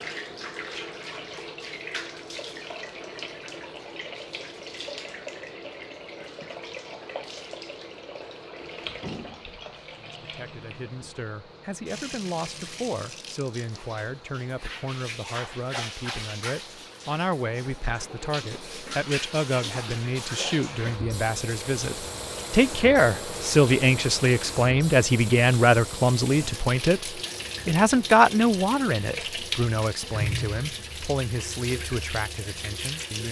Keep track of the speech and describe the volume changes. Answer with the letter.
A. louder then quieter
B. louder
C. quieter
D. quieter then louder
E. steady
A.